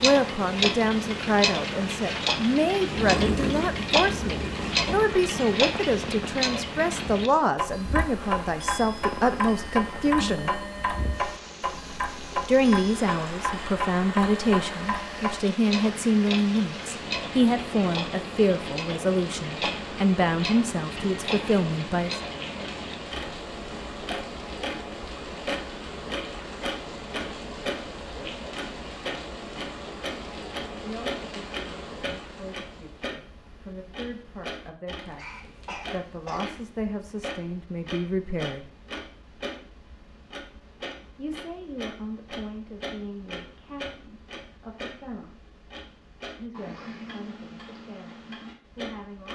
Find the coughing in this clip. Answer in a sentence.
You can hear the coughing from 35.0 to 36.6 s.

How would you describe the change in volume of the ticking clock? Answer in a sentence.
The loudness of the ticking clock goes down.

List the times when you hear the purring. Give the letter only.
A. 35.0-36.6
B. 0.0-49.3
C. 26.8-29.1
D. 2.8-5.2
D.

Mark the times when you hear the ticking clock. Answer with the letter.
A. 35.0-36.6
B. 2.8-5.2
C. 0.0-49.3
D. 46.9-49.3
C.